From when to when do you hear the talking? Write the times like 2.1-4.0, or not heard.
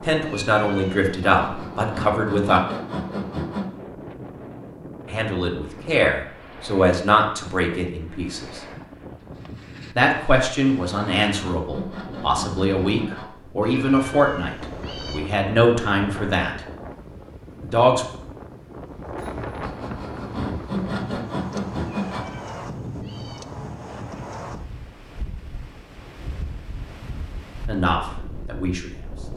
0.0-2.6, 5.1-8.6, 9.9-16.6, 17.6-18.1, 27.6-29.3.